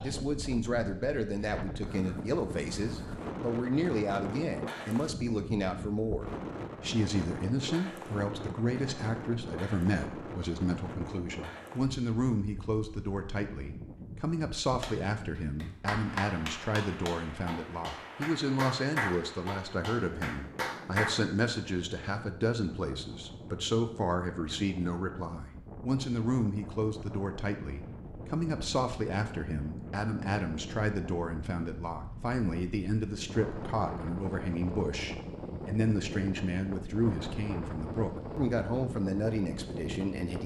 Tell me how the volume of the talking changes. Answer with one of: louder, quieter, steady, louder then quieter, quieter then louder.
steady.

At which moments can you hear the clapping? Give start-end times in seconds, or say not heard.
14.8-21.2.